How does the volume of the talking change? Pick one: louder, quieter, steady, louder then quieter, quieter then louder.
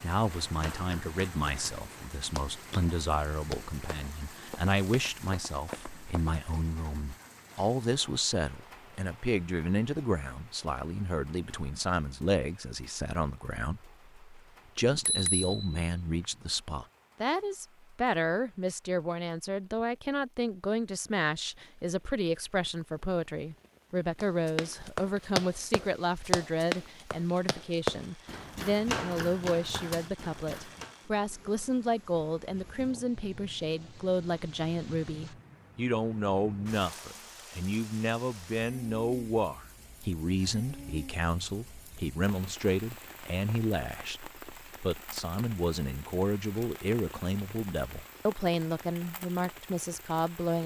steady.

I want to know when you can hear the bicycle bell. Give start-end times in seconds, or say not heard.
14.8-16.4.